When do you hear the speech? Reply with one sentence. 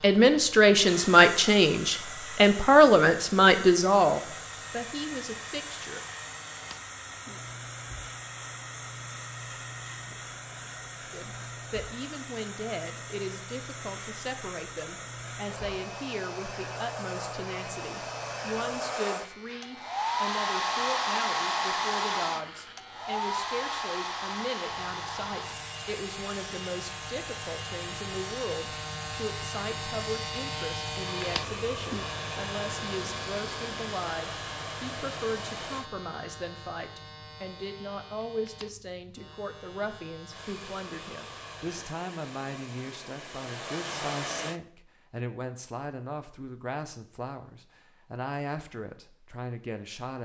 The speech can be heard from 0.0 to 6.0 s and from 11.1 to 50.1 s.